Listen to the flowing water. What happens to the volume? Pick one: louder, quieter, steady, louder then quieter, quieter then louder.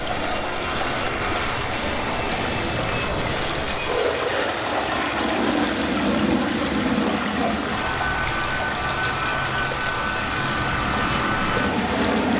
steady.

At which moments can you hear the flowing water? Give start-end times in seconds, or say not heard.
0.0-12.3.